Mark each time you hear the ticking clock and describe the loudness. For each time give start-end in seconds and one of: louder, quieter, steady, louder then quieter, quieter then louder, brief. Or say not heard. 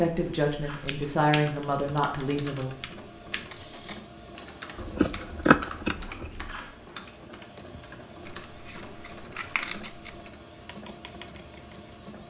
not heard.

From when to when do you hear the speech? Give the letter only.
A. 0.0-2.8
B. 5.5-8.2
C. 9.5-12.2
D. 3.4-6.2
A.